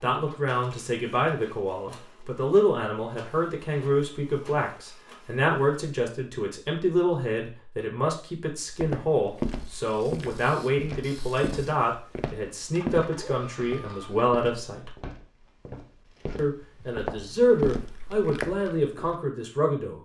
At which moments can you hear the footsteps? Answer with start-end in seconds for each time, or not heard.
8.8-19.1.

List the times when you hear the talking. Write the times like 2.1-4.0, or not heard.
0.0-14.9, 16.4-20.0.